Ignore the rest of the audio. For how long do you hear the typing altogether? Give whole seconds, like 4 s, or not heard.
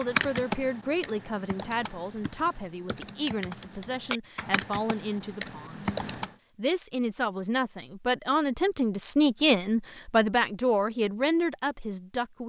6 s.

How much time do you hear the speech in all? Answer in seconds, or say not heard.
12 s.